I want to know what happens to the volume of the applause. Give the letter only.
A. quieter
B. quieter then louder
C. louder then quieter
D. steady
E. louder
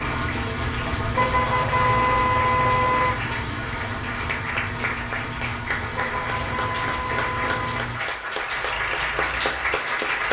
E.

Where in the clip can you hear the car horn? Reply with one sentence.
You can hear the car horn from 1.1 to 3.1 s and from 5.9 to 7.8 s.